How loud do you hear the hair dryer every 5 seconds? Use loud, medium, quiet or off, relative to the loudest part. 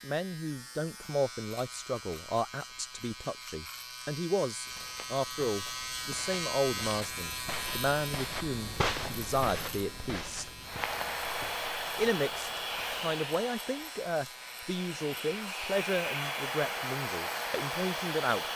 off, off, loud, loud.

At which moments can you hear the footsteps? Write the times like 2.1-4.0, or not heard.
4.6-13.2.